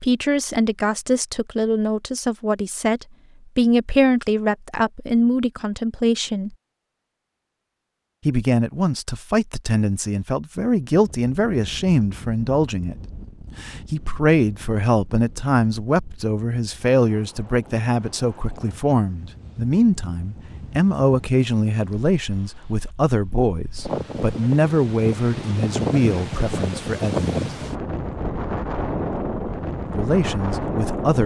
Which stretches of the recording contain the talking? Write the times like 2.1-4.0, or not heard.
0.0-6.5, 8.2-12.9, 13.6-27.3, 29.9-31.2.